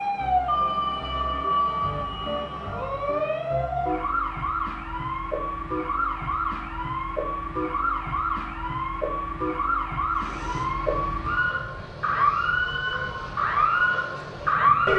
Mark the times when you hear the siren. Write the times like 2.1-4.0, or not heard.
0.0-14.9.